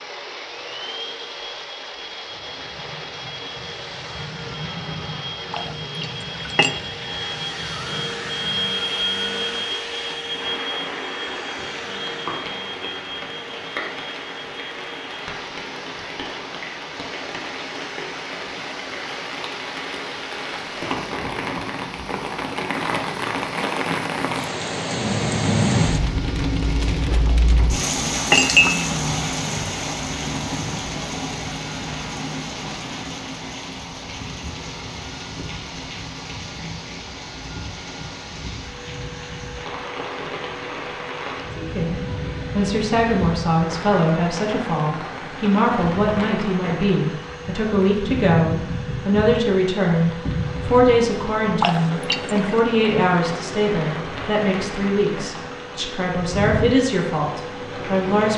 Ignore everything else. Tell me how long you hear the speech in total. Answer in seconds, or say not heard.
17 s.